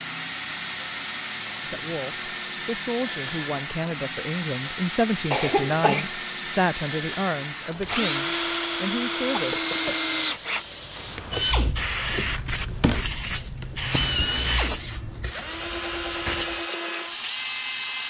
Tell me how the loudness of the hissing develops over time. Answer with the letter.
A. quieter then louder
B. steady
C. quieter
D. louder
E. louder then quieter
B.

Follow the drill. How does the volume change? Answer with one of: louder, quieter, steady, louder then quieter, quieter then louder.
steady.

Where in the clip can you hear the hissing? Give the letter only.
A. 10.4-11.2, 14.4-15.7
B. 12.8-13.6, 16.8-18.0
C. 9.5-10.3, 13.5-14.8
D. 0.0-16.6
D.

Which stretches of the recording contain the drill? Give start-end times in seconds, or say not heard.
0.0-18.0.